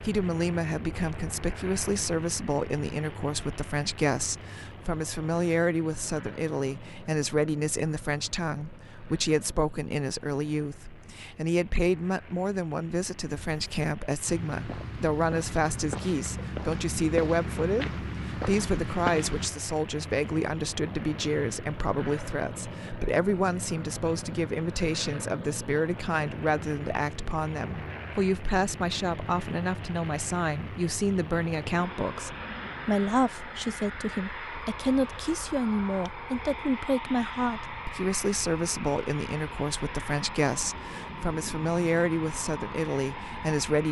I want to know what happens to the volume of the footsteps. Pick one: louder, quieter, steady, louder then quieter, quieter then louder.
louder.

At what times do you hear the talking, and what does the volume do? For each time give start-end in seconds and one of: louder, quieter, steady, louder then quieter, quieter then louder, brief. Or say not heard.
0.0-43.8 steady.